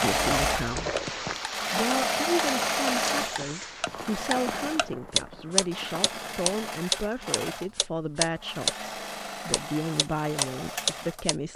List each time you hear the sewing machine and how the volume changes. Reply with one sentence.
The sewing machine can be heard from 0.0 to 11.5 s, getting quieter.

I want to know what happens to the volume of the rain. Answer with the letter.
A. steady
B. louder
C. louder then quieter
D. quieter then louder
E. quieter
E.